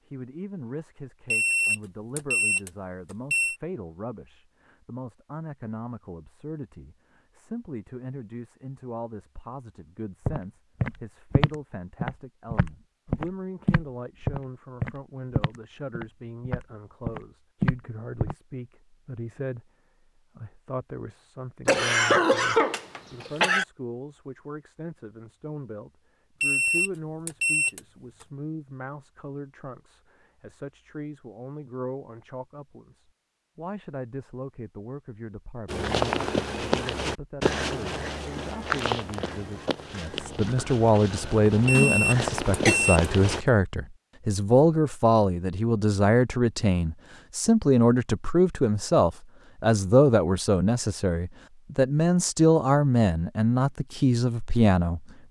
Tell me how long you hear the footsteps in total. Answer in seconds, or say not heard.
16 s.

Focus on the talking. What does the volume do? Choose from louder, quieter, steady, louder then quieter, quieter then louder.
louder.